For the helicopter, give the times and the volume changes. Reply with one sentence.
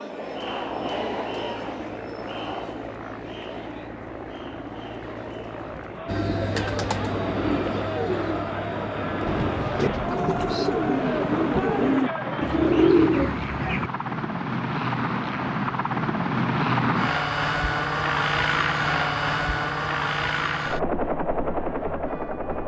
The helicopter can be heard from 0.0 to 22.6 s, getting louder.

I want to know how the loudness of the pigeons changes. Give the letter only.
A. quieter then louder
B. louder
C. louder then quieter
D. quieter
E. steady
B.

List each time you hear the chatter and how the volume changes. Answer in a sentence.
You can hear the chatter from 0.0 to 12.9 s, getting quieter then louder.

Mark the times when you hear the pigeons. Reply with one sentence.
The pigeons can be heard from 6.0 to 13.9 s.